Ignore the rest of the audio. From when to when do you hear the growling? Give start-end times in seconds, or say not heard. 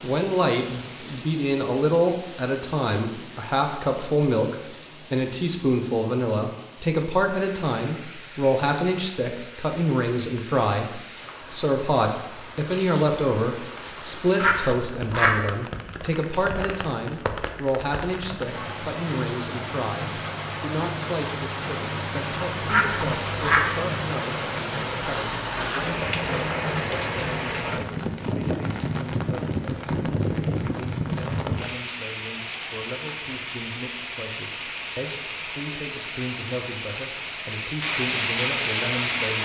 not heard.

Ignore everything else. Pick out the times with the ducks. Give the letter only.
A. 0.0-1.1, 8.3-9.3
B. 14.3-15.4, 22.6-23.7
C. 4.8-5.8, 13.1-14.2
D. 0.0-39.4
B.